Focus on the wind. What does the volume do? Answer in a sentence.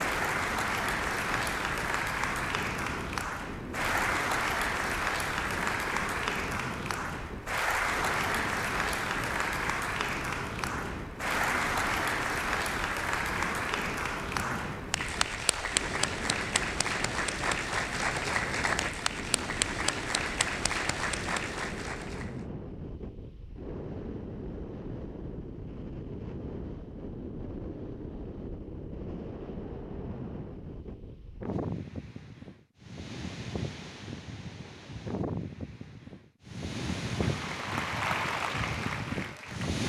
The loudness of the wind stays about the same.